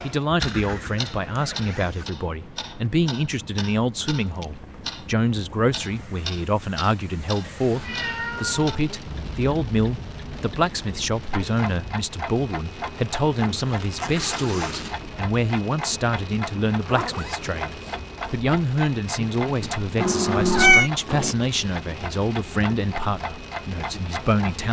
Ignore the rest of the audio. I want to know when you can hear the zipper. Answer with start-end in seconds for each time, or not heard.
0.4-2.0, 13.6-14.9, 16.8-18.4.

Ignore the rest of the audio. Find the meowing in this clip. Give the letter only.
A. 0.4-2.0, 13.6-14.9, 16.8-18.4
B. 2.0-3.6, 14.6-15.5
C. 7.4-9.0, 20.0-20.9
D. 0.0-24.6
C.